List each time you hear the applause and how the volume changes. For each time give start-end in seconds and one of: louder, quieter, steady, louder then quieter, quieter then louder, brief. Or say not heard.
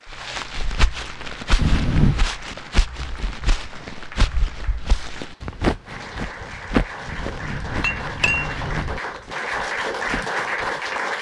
0.0-11.1 louder.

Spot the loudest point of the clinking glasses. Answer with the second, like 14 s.
2 s.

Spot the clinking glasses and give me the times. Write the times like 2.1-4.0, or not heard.
1.6-2.2, 7.0-9.0.